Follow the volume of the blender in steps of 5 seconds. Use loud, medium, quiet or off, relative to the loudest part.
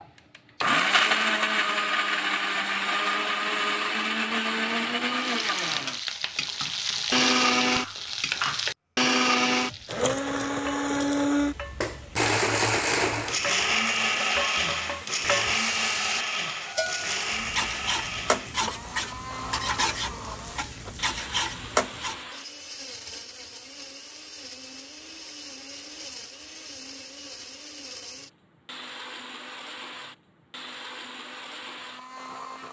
loud, loud, loud, medium, quiet, quiet, quiet.